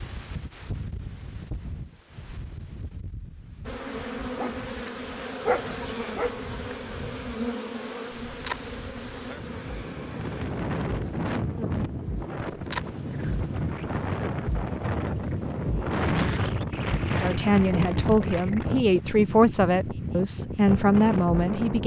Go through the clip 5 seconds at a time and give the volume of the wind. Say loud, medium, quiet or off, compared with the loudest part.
quiet, quiet, loud, loud, loud.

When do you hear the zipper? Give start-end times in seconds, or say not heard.
8.2-9.2, 12.3-14.2.